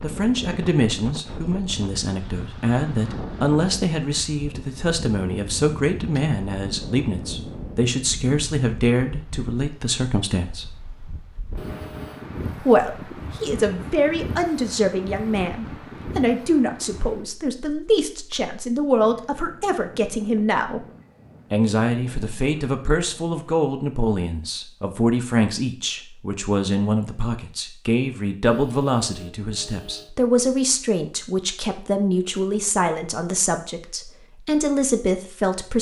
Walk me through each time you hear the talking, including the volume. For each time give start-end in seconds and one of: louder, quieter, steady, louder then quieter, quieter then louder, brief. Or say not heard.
0.0-10.7 steady
12.6-20.9 steady
21.5-35.7 steady.